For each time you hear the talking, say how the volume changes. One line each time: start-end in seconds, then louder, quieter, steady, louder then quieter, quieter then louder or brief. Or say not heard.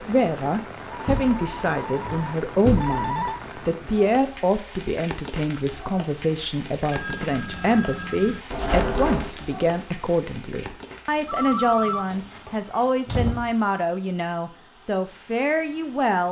0.0-16.2 steady.